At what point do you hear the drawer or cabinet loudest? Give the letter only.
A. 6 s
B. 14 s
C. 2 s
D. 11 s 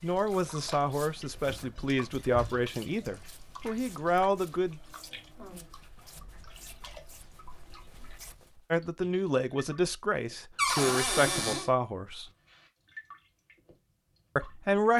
D.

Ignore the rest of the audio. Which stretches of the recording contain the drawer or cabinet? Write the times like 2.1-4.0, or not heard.
1.4-2.6, 10.6-11.7.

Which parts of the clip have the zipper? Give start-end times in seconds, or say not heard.
not heard.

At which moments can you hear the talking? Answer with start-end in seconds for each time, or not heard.
0.0-4.8, 8.7-12.3, 14.3-14.9.